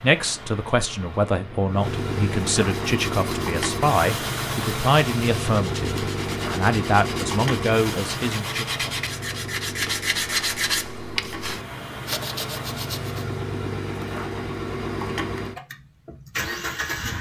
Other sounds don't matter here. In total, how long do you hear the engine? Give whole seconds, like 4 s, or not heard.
17 s.